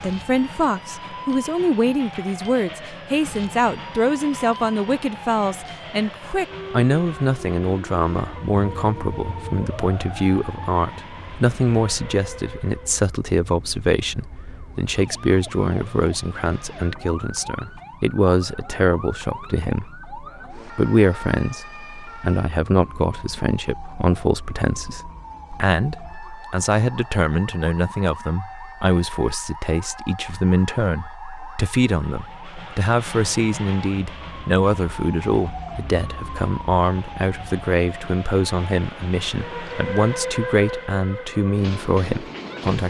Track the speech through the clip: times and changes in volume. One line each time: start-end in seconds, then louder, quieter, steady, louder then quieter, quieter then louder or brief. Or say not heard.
0.0-42.8 steady.